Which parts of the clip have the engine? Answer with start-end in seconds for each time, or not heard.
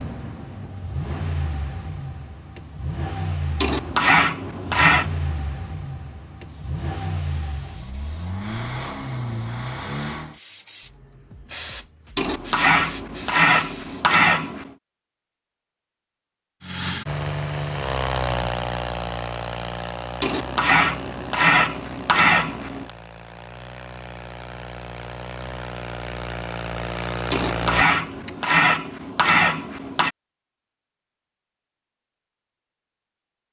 0.0-10.4, 16.6-28.5.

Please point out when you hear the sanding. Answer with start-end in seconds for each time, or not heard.
3.6-5.0, 12.2-14.7, 20.2-22.9, 27.3-30.1.